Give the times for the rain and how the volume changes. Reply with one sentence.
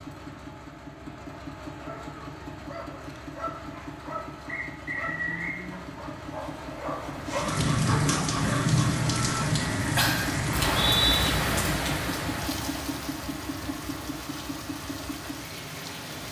You can hear the rain from 7.2 to 16.2 s, getting quieter.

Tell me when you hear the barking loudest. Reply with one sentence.
The volume of the barking peaks at 7 seconds.